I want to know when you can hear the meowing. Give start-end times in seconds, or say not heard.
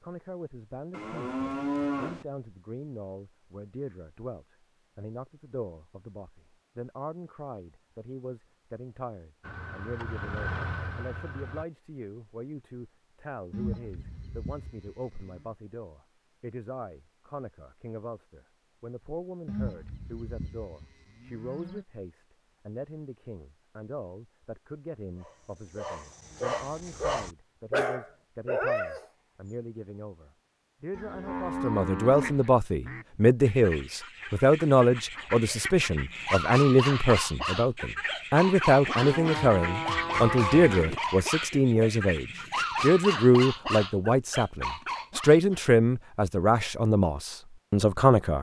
not heard.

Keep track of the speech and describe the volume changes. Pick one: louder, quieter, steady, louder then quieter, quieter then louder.
louder.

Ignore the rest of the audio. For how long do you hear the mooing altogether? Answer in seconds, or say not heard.
9 s.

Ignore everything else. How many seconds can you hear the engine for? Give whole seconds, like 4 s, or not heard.
2 s.